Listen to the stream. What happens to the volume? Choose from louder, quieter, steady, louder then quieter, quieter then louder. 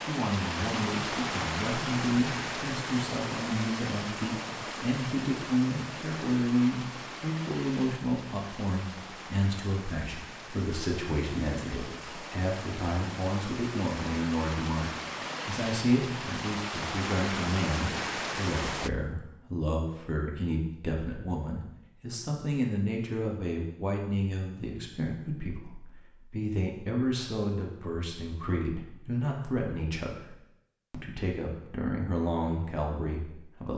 quieter then louder.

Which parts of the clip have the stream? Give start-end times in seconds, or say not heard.
0.0-18.9.